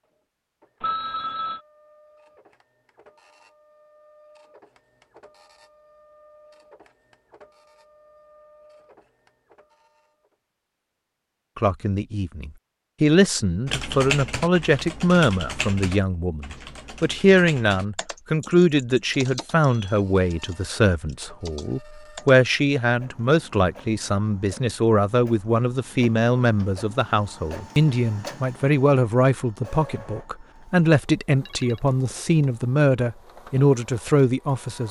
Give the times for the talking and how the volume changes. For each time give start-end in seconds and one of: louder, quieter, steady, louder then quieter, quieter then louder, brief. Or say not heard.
11.6-34.8 steady.